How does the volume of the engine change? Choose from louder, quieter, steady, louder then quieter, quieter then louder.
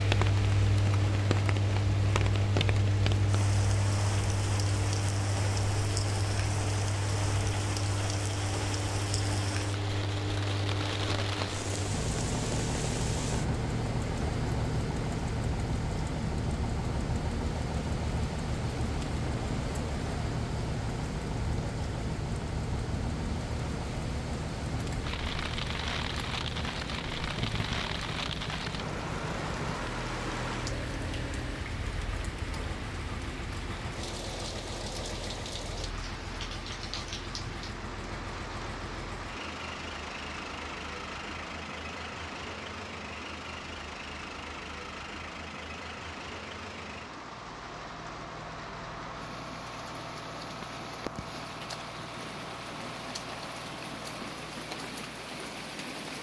quieter.